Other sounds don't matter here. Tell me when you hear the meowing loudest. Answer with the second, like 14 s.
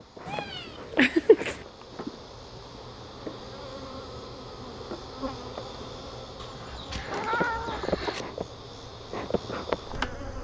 1 s.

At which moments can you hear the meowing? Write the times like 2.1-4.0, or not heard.
0.2-1.6, 6.3-8.2.